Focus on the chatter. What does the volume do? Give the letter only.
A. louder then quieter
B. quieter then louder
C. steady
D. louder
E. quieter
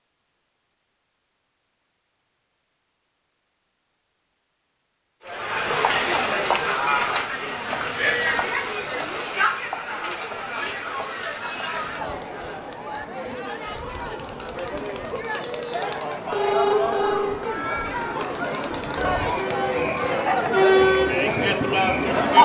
B.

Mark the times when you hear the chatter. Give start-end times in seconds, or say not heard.
5.2-22.3.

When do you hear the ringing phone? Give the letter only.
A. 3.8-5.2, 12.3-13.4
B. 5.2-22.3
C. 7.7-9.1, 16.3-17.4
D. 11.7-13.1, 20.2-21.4
C.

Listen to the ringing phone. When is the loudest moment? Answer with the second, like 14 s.
17 s.